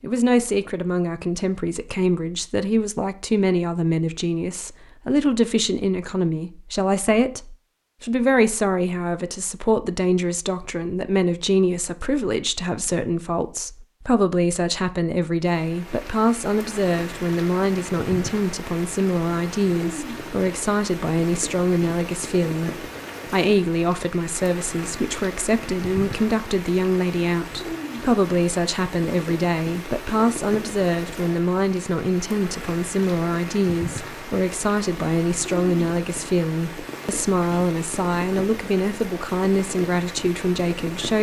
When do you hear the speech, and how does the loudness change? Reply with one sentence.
You can hear the speech from 0.0 to 41.1 s, at a steady volume.